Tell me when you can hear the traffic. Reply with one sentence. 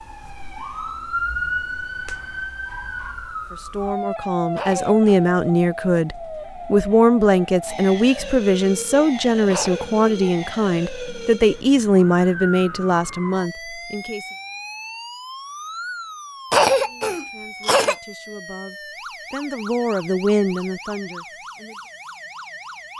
The traffic can't be heard in this clip.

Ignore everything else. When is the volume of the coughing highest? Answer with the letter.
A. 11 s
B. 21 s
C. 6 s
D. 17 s
D.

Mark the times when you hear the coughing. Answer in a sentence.
You can hear the coughing from 4.5 to 5.3 s, from 9.5 to 10.2 s and from 16.5 to 17.9 s.